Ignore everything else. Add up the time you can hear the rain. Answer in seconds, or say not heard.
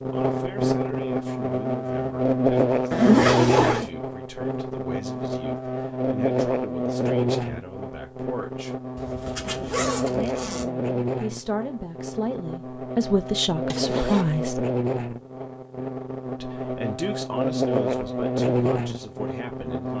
not heard.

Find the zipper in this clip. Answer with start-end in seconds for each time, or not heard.
2.9-3.9, 8.9-10.7, 13.7-14.4.